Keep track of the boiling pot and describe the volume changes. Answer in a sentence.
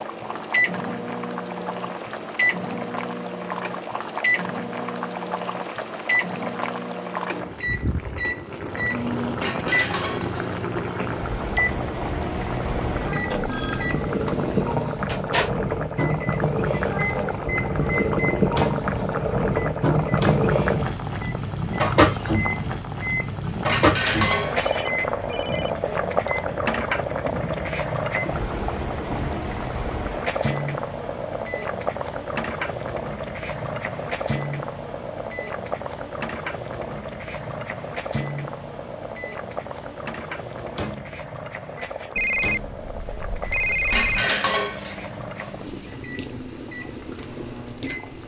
The loudness of the boiling pot goes up, then down.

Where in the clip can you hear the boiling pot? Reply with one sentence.
You can hear the boiling pot from 0.0 to 48.2 s.